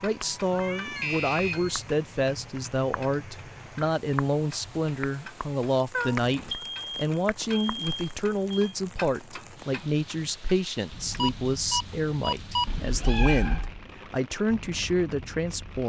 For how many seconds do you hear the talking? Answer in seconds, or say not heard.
16 s.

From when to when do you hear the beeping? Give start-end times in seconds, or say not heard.
0.9-1.8, 6.2-8.8, 11.2-12.7.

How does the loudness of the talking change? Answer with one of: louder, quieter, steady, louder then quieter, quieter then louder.
steady.